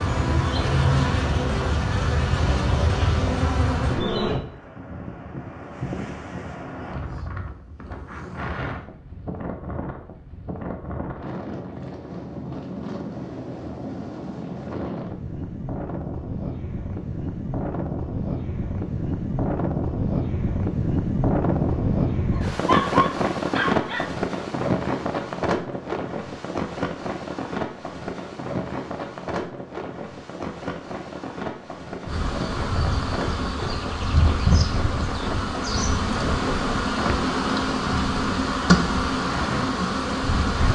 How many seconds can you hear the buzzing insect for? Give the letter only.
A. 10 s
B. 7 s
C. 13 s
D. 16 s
C.